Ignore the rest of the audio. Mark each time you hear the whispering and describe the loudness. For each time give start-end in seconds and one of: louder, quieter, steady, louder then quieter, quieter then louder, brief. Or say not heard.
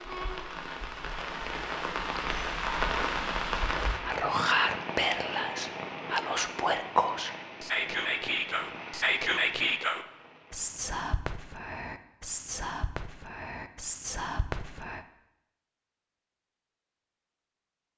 4.0-15.0 quieter.